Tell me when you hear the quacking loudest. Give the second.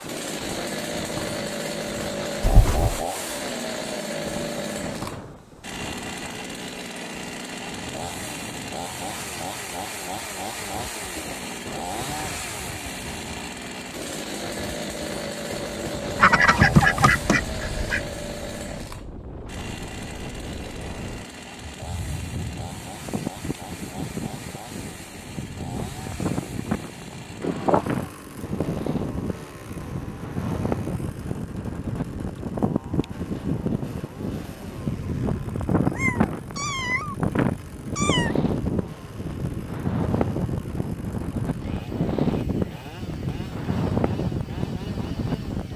17 s.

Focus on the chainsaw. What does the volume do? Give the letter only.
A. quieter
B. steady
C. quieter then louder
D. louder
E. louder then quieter
A.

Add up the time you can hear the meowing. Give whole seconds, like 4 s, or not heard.
4 s.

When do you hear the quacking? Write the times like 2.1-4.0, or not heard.
16.1-18.0.